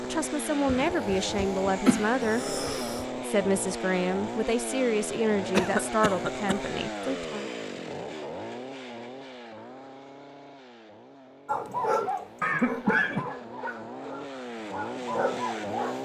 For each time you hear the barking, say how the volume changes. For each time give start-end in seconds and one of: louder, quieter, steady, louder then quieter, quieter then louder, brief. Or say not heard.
11.4-15.9 quieter then louder.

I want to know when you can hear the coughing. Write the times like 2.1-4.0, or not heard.
0.7-3.0, 5.5-6.5, 12.4-13.3.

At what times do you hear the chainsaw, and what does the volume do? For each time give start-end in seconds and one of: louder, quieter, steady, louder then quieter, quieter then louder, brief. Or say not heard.
0.0-15.9 quieter then louder.